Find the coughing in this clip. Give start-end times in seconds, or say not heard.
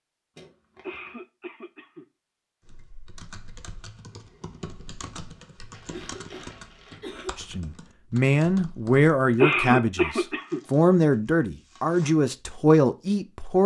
0.8-2.0, 5.8-7.3, 9.4-10.6.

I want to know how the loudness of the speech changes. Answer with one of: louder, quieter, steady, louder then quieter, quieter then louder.
steady.